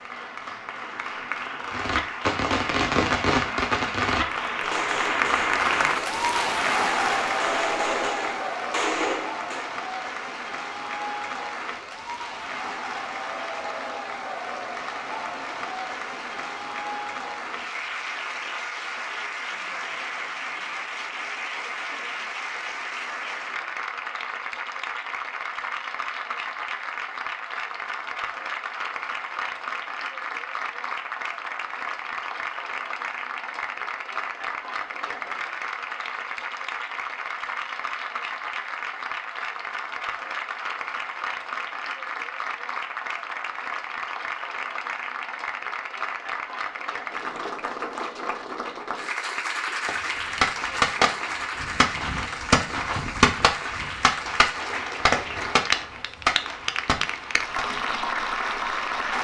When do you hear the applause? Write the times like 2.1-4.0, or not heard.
0.0-59.1.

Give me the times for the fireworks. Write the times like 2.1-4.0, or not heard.
1.7-9.7, 49.9-57.8.